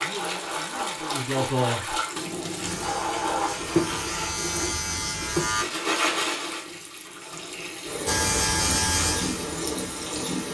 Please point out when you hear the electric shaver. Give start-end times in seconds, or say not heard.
2.6-5.7, 8.1-10.4.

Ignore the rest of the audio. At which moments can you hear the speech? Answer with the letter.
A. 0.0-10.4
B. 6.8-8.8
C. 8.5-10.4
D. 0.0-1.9
D.